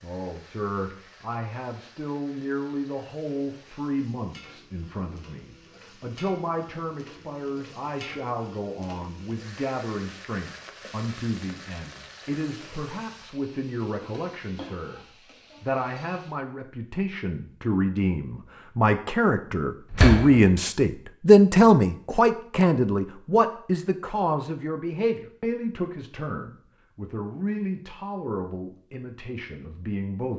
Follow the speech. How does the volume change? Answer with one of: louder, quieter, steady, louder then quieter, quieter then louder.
louder then quieter.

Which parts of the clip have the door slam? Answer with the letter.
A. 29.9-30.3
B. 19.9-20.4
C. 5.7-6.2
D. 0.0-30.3
B.